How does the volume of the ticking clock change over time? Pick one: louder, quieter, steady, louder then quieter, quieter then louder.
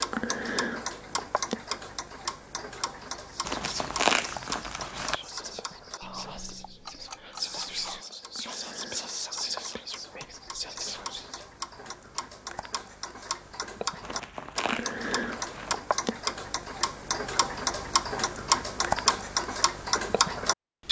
quieter then louder.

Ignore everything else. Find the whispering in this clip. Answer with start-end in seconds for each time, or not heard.
3.1-11.4.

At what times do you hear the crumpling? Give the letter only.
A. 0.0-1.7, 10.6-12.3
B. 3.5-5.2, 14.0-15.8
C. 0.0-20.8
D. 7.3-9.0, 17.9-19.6
B.